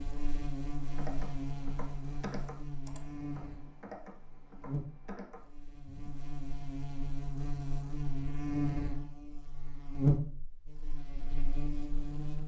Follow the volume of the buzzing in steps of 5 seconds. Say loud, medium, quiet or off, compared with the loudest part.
medium, medium, loud.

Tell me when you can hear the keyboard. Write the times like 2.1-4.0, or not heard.
0.8-6.2.